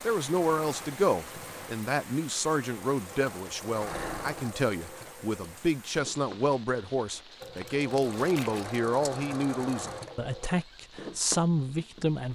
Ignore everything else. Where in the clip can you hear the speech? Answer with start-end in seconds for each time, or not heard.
0.0-12.3.